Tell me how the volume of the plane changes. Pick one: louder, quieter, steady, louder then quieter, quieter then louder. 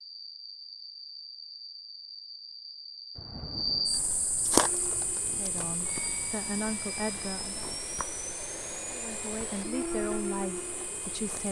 louder.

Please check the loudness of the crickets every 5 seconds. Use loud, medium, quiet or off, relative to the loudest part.
loud, medium, medium.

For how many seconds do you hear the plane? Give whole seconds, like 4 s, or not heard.
7 s.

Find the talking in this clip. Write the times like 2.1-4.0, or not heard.
5.3-7.7, 8.9-11.4.